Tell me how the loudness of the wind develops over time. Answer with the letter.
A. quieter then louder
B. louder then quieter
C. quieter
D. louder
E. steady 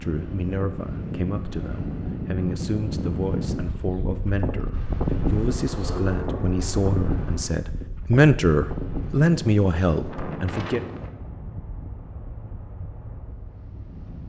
C.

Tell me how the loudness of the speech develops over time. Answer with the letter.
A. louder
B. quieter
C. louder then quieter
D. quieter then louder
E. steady
A.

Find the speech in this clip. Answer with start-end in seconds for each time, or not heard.
0.0-10.8.